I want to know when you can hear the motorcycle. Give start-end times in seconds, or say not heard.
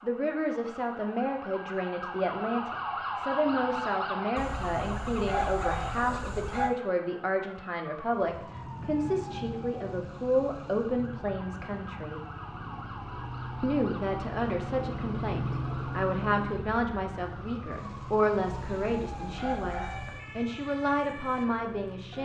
8.2-22.1.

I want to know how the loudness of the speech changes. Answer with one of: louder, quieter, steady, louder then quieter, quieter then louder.
steady.